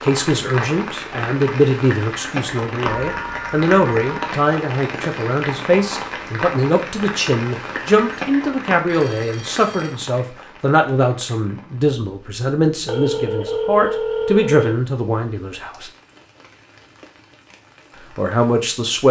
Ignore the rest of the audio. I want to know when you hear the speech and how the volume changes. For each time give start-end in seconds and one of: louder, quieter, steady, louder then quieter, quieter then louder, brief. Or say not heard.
0.0-15.9 steady
18.1-19.0 brief.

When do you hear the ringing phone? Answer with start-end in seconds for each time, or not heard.
2.9-4.2, 8.8-9.9, 12.8-14.8.